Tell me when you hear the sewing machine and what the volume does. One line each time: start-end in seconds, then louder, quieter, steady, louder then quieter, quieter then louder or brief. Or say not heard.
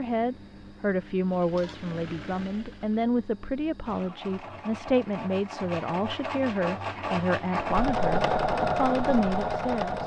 0.0-10.0 louder.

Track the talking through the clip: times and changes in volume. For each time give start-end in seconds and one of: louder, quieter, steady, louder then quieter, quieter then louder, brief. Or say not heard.
0.0-10.0 steady.